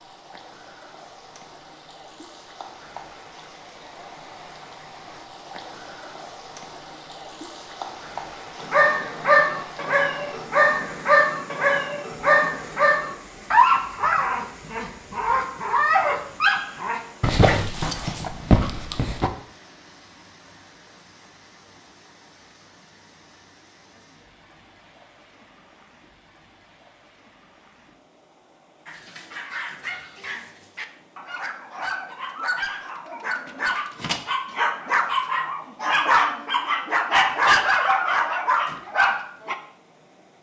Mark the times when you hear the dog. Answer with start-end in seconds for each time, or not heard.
8.6-19.3, 28.9-39.5.